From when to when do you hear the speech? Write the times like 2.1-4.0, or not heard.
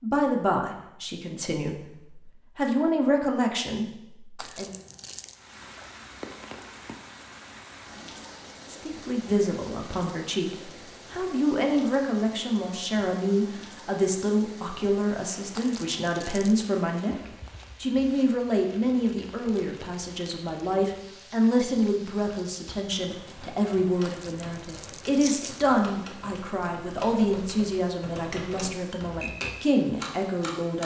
0.0-4.7, 8.7-30.8.